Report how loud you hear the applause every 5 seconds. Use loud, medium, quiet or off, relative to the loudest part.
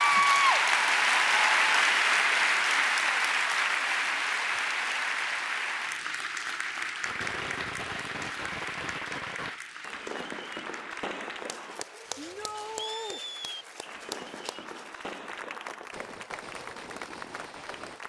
loud, medium, quiet, quiet.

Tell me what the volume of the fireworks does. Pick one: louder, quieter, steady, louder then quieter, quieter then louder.
quieter.